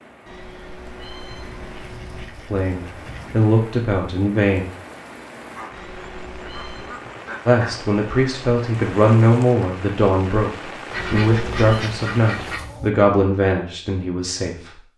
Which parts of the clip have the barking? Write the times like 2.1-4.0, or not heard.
not heard.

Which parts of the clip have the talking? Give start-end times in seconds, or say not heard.
2.5-4.7, 7.5-14.8.